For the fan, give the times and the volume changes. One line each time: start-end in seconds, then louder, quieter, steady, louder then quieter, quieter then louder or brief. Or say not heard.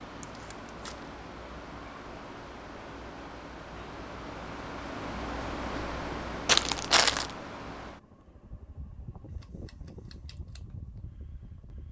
0.0-11.8 louder then quieter.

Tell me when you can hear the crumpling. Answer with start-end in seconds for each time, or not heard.
0.2-1.1, 6.5-7.3.